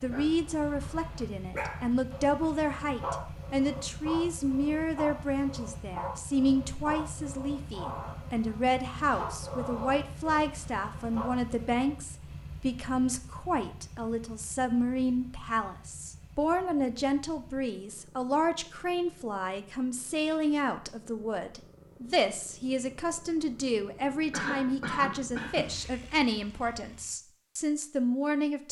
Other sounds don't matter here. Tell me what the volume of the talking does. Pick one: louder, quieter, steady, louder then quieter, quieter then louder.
steady.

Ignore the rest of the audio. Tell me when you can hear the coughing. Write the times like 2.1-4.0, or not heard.
24.3-25.8.